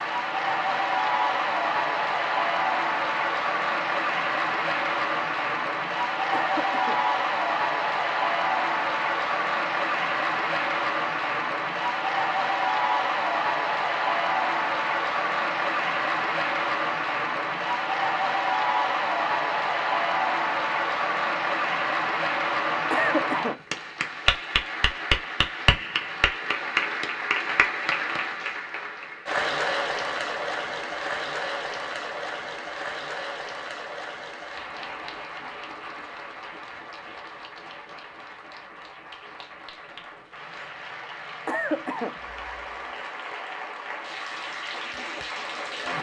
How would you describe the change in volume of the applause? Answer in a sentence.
The loudness of the applause goes down.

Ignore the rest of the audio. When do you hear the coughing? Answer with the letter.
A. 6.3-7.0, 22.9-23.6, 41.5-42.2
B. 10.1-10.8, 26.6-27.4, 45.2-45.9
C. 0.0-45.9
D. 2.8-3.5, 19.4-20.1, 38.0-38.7
A.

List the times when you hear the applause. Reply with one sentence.
You can hear the applause from 0.0 to 45.9 s.